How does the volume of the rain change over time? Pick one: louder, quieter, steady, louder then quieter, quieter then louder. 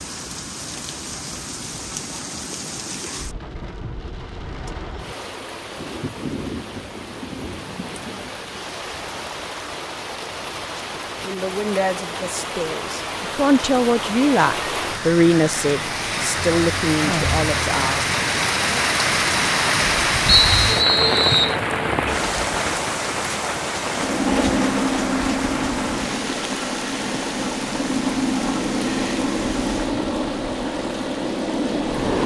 louder then quieter.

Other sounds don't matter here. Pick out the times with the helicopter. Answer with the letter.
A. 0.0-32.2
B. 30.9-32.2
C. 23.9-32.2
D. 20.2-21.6
C.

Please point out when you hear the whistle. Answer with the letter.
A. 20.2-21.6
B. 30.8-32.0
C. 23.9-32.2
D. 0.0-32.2
A.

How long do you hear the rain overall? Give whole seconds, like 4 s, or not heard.
32 s.